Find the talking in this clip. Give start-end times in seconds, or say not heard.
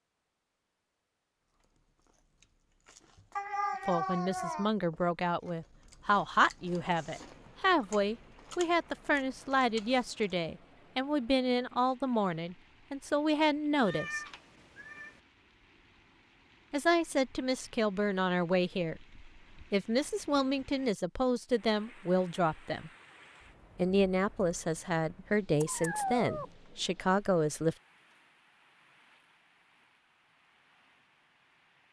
3.9-14.2, 16.7-22.9, 23.8-27.8.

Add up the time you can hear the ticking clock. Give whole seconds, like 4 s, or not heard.
not heard.